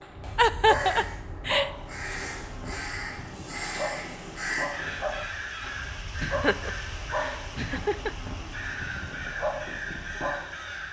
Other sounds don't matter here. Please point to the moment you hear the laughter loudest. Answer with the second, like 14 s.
1 s.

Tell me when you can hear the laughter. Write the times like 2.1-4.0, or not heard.
0.3-1.7, 6.2-8.1.